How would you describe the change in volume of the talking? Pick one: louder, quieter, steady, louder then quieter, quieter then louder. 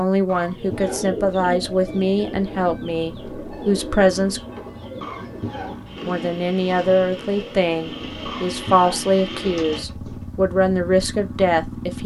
steady.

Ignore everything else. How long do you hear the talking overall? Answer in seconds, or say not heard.
10 s.